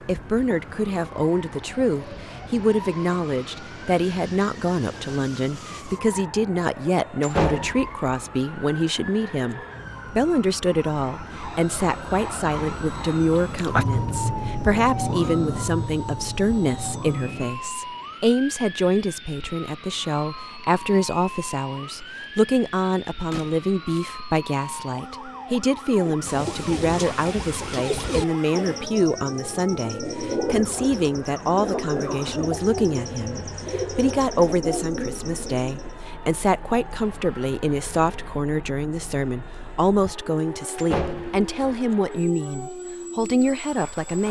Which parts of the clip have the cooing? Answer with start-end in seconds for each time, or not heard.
26.1-36.0.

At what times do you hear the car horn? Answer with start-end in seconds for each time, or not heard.
not heard.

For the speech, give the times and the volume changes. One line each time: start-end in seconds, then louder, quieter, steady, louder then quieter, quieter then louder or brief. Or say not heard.
0.1-44.2 steady.